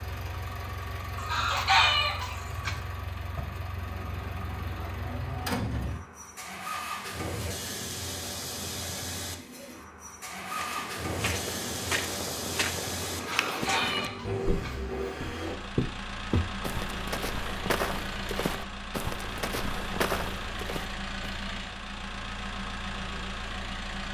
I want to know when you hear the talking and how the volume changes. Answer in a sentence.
You can't hear the talking here.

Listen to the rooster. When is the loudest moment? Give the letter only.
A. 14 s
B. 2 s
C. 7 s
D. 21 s
B.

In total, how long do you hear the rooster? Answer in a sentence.
You can hear the rooster for 3 seconds altogether.